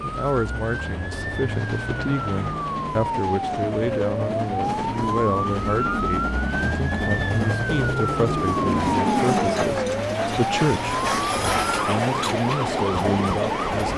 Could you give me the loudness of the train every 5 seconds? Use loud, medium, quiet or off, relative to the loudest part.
medium, loud, loud.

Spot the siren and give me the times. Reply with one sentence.
The siren can be heard from 0.1 to 13.8 s.